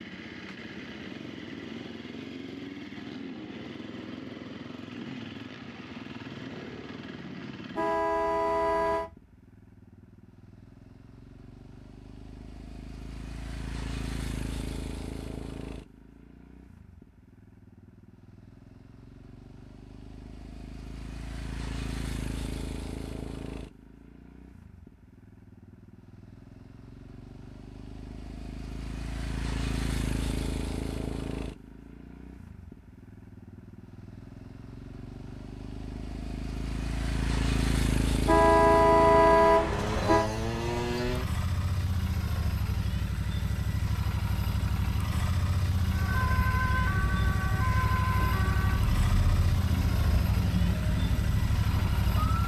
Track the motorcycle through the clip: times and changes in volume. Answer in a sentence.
You can hear the motorcycle from 0.0 to 52.4 s, getting louder.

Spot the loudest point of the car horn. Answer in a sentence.
The loudest moment of the car horn is at 39 seconds.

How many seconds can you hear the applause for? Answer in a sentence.
You can't hear the applause here.